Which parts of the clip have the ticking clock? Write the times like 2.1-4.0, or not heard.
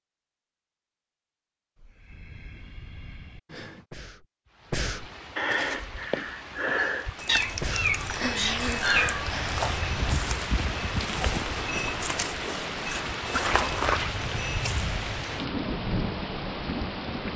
not heard.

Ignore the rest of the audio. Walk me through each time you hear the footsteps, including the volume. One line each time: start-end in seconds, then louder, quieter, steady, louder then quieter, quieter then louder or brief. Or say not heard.
5.5-15.3 louder.